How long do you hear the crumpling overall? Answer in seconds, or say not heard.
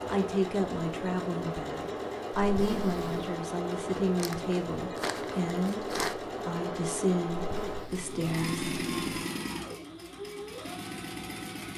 2 s.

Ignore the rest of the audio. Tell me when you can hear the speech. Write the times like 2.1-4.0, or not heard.
0.1-8.7.